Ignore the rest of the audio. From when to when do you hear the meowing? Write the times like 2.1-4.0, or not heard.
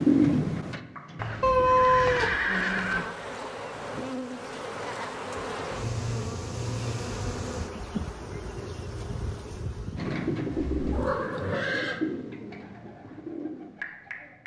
1.4-2.4, 10.9-11.7.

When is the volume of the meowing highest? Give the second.
2 s.